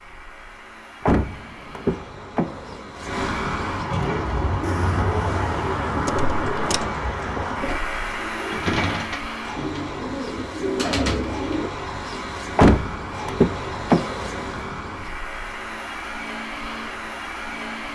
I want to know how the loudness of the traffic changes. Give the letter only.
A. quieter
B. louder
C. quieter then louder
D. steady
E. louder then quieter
E.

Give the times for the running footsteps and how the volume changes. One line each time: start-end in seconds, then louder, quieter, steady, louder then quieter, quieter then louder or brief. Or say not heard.
not heard.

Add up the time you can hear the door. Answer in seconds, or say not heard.
5 s.